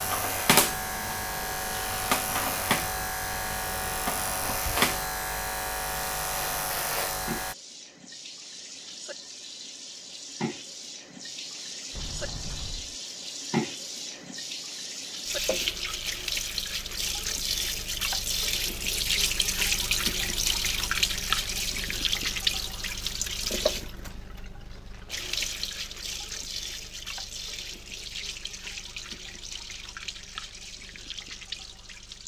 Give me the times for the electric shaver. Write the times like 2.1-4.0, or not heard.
0.0-7.5.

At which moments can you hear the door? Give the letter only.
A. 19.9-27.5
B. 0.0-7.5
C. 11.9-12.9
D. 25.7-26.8
C.